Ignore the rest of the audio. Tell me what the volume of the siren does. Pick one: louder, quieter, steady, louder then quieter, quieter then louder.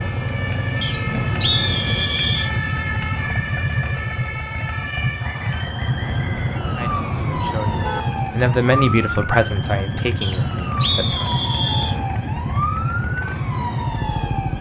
steady.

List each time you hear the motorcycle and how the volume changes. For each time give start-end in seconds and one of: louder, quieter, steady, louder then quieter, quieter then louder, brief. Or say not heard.
0.0-14.5 steady.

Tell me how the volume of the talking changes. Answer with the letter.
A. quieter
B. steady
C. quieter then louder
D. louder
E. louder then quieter
E.